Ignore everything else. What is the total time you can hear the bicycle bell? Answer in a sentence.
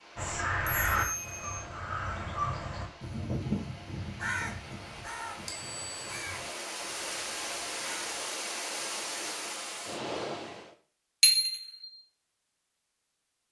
The bicycle bell can be heard for 2 seconds in total.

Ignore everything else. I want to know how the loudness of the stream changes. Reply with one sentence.
The volume of the stream goes up.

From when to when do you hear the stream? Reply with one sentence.
The stream can be heard from 0.0 to 10.8 s.